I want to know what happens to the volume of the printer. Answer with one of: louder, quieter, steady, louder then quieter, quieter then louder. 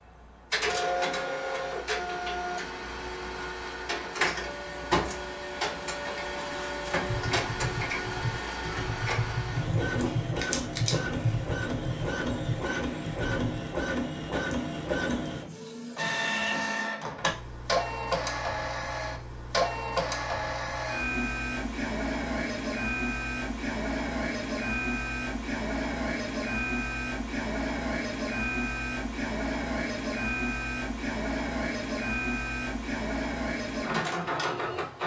steady.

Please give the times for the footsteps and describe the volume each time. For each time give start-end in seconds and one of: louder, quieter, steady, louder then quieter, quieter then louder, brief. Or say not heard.
not heard.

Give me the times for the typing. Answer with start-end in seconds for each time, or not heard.
7.0-13.6.